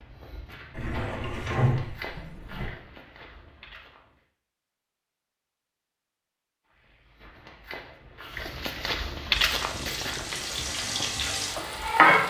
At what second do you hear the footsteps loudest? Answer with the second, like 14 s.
9 s.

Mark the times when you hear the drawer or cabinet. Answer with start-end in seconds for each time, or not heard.
0.7-2.7.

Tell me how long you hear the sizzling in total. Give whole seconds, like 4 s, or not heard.
3 s.